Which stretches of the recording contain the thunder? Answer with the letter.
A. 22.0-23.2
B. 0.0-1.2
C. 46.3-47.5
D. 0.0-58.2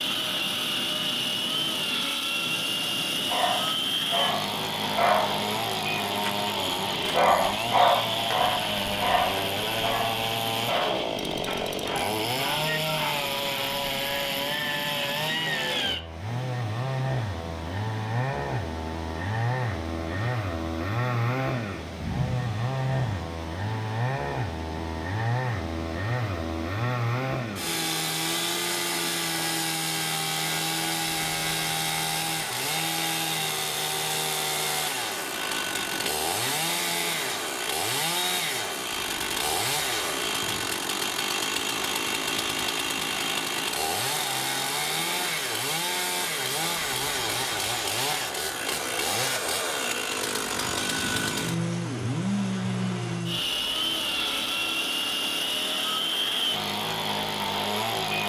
A.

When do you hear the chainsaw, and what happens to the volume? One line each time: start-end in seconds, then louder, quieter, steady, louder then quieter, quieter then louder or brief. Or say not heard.
0.0-58.2 steady.